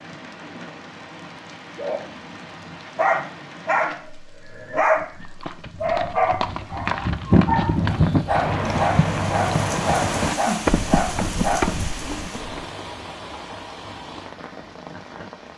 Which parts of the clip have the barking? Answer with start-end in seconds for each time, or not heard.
1.8-5.1, 5.8-11.7.